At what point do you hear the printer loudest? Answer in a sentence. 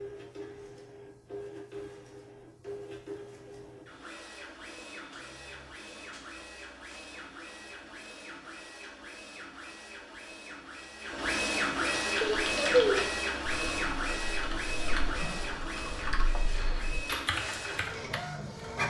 The loudest moment of the printer is at 12 seconds.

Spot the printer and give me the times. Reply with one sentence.
The printer can be heard from 0.0 to 18.8 s.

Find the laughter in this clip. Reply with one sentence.
You can hear the laughter from 12.2 to 13.2 s.